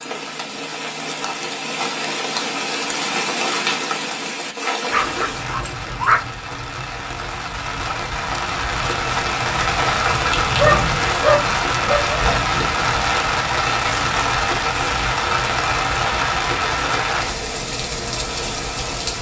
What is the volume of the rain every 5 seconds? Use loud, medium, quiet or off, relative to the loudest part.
medium, medium, loud, loud.